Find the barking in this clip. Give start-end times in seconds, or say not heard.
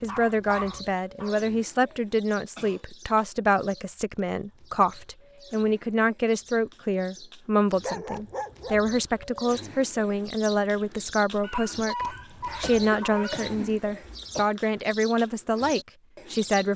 0.1-1.4, 7.8-8.8, 11.4-13.5.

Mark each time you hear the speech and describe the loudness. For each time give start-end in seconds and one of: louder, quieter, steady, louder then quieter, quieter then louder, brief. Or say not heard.
0.0-16.7 steady.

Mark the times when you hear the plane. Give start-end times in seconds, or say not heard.
not heard.